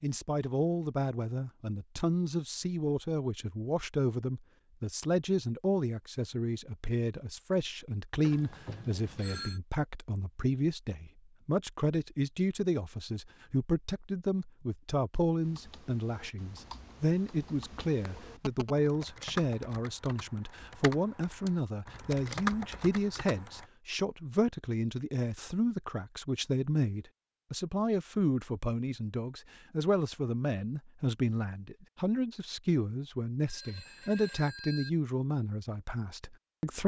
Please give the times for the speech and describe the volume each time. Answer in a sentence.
The speech can be heard from 0.0 to 36.8 s, at a steady volume.